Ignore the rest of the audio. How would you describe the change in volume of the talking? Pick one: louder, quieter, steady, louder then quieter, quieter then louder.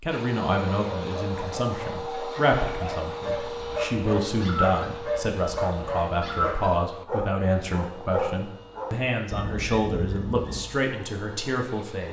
steady.